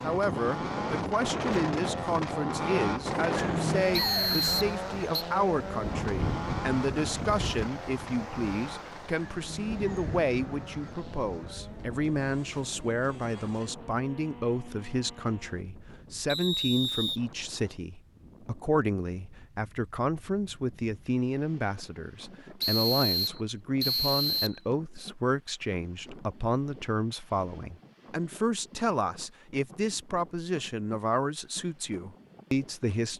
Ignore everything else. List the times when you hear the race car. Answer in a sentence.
The race car can be heard from 0.0 to 15.7 s.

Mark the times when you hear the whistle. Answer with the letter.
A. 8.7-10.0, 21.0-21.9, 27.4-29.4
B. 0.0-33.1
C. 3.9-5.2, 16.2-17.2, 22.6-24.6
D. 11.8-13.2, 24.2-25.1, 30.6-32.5
C.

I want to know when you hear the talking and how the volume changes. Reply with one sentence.
You can hear the talking from 0.0 to 33.1 s, at a steady volume.